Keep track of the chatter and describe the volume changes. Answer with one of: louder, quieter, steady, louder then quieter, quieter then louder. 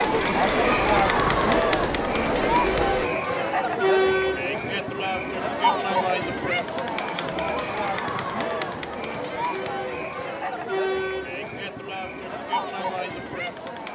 quieter.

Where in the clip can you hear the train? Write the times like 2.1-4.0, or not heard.
0.0-3.0.